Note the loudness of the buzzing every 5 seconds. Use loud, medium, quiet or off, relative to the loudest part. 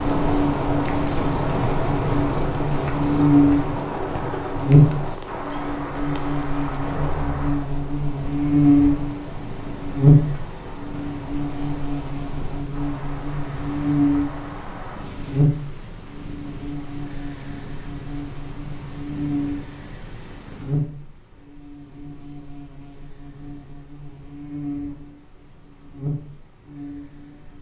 loud, loud, loud, medium, quiet, quiet.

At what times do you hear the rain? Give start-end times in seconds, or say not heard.
0.0-15.5.